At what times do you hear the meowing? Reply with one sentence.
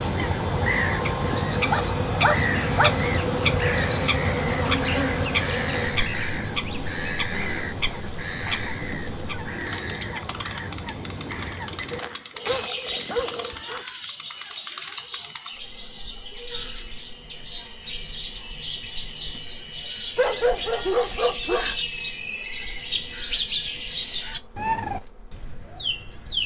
You can't hear the meowing here.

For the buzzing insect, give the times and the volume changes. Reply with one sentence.
The buzzing insect can be heard from 0.0 to 26.4 s, getting quieter.